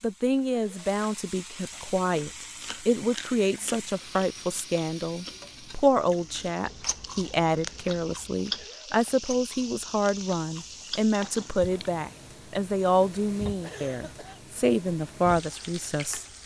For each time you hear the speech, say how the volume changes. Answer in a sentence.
You can hear the speech from 0.0 to 16.4 s, at a steady volume.